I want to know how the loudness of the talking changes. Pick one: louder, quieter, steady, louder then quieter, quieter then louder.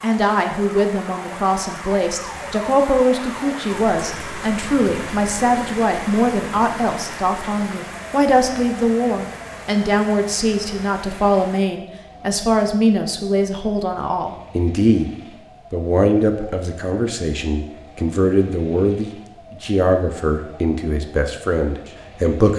steady.